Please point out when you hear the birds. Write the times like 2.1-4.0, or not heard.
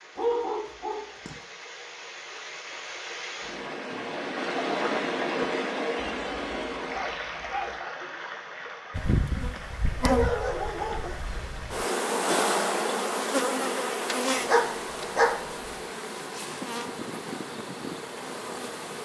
not heard.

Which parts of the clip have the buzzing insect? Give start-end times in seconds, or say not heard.
8.9-19.0.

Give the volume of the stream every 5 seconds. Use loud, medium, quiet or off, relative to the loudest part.
loud, loud, medium, medium.